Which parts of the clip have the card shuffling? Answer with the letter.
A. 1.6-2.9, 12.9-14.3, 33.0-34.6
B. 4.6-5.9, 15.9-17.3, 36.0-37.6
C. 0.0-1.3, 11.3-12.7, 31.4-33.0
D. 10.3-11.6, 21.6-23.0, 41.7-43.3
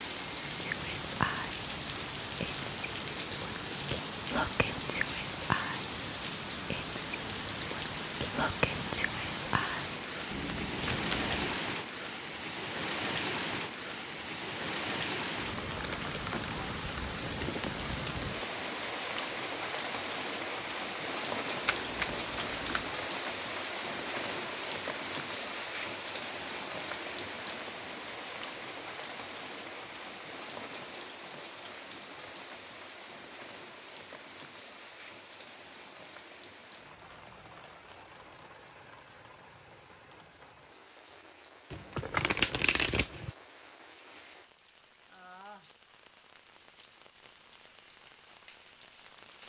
D.